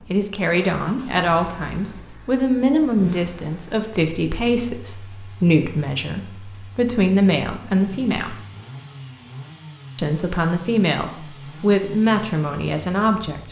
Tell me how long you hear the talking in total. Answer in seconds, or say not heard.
12 s.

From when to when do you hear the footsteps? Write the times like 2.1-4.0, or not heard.
not heard.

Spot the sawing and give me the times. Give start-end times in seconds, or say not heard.
not heard.